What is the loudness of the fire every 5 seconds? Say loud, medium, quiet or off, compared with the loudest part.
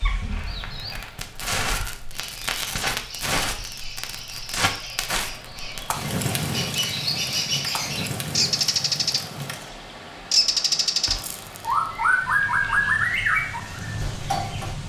loud, loud, medium.